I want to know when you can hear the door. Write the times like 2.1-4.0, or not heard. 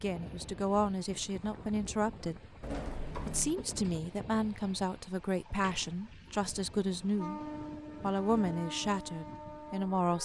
2.6-3.5, 5.2-6.4.